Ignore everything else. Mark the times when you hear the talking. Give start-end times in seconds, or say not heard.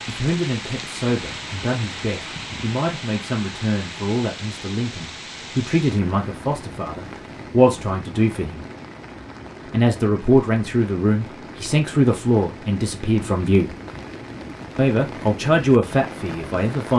0.1-8.7, 9.7-13.8, 14.8-16.9.